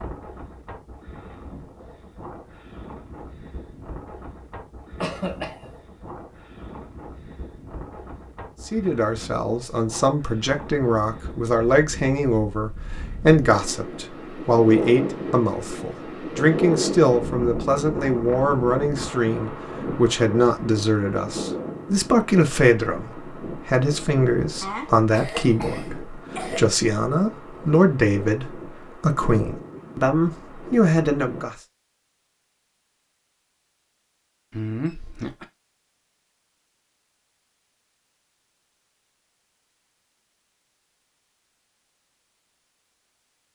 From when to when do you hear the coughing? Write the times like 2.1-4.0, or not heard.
5.0-5.7, 24.6-26.6, 34.5-35.5.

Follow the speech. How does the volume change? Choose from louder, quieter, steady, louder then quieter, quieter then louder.
steady.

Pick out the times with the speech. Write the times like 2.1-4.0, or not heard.
8.7-31.6.